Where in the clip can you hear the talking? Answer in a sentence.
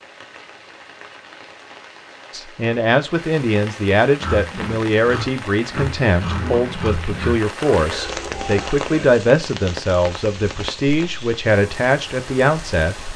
The talking can be heard from 2.3 to 12.9 s.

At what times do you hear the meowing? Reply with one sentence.
You can't hear the meowing here.